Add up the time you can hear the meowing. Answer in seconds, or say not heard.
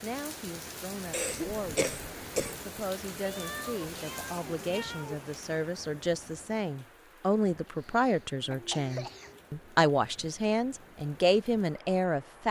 2 s.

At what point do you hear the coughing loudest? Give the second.
2 s.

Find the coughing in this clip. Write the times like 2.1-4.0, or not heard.
1.1-2.5, 7.8-9.3.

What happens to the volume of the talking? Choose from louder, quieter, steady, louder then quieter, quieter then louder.
louder.